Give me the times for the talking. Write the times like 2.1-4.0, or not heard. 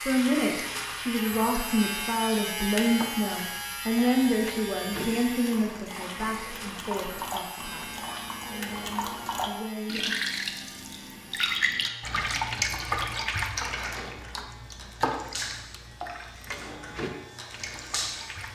0.1-10.2.